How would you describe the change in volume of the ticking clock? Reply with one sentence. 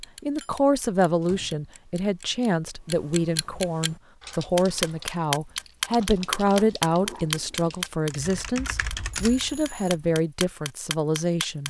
The loudness of the ticking clock goes up, then down.